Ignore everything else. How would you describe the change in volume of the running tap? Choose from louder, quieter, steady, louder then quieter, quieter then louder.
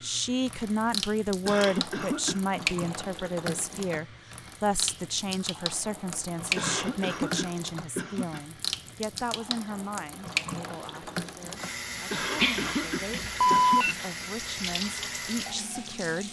steady.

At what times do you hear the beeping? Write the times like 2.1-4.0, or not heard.
12.3-13.9.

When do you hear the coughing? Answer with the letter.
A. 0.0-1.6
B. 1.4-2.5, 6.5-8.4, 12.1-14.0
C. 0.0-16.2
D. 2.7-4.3
B.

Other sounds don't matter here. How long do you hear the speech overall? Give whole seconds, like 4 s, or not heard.
16 s.